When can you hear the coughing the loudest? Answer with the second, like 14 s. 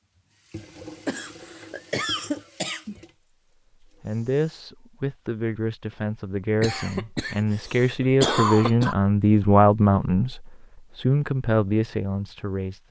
8 s.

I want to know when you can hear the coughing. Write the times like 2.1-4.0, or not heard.
1.1-3.0, 6.6-8.9.